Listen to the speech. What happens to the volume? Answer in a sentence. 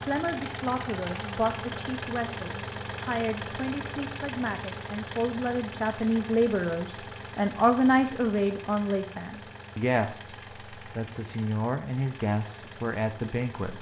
The volume of the speech goes up, then down.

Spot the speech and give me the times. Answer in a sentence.
The speech can be heard from 0.0 to 13.7 s.